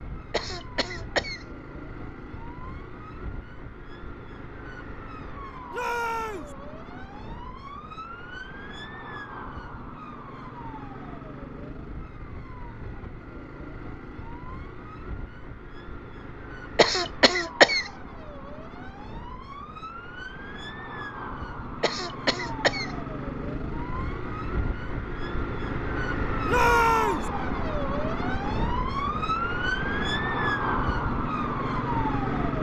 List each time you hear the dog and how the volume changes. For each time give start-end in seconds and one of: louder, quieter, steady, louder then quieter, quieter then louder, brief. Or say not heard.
not heard.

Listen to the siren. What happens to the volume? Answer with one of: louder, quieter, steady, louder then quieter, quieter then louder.
louder.